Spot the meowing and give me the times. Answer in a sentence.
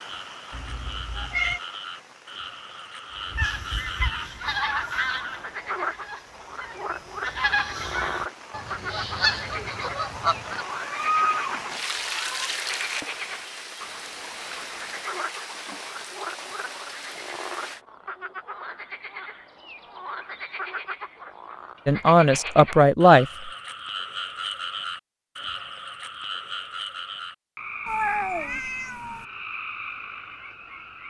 The meowing can be heard from 0.5 to 1.6 s, from 10.7 to 12.5 s and from 27.9 to 29.2 s.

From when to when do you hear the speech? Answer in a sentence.
You can hear the speech from 21.9 to 23.2 s.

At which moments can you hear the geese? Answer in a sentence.
The geese can be heard from 3.1 to 10.7 s.